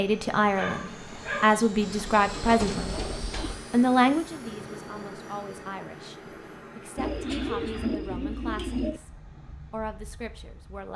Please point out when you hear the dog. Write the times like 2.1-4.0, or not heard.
0.6-1.4.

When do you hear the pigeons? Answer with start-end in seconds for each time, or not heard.
1.8-3.6, 7.0-9.0.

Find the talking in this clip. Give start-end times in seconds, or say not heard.
0.0-3.0, 3.7-10.9.